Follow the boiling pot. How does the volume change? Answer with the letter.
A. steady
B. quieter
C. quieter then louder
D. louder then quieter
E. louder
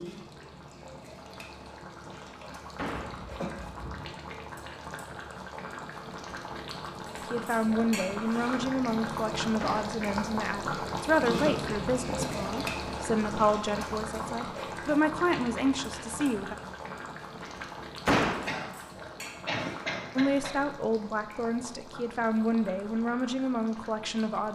D.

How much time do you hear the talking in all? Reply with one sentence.
The talking can be heard for 14 seconds in total.